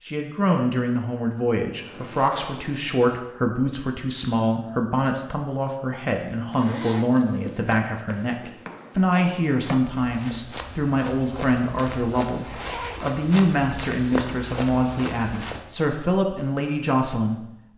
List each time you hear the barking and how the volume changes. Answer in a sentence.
The barking can't be heard in this clip.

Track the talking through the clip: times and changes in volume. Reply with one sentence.
The talking can be heard from 0.1 to 17.7 s, at a steady volume.